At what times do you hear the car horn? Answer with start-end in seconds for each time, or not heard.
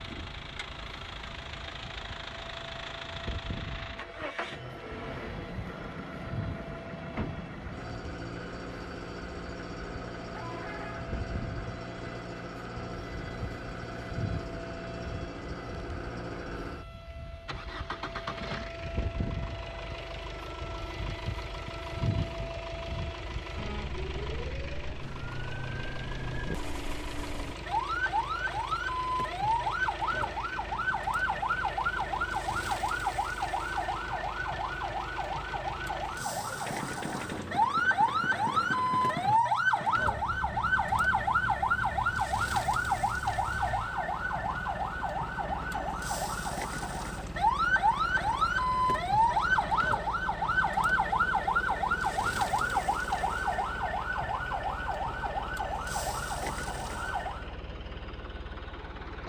10.3-11.1.